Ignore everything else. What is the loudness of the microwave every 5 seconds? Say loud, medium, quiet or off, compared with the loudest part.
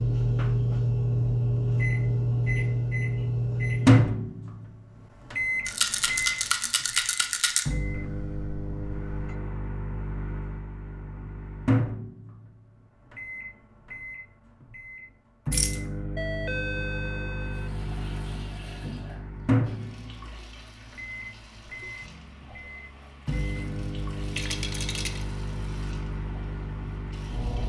loud, medium, medium, medium, quiet, quiet.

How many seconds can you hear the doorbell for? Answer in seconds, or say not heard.
3 s.